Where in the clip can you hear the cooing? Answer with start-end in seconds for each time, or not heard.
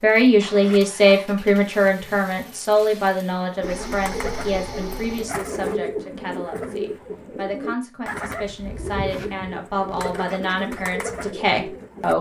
3.6-12.1.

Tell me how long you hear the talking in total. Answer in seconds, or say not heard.
12 s.